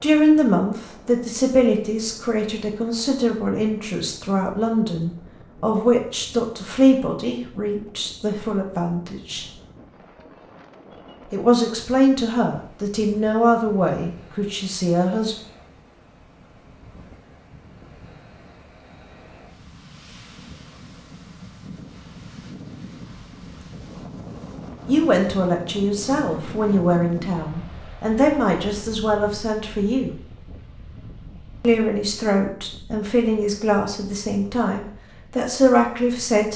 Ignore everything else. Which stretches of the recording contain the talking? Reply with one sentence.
You can hear the talking from 0.0 to 9.4 s, from 11.3 to 15.3 s, from 24.9 to 30.1 s and from 31.6 to 36.5 s.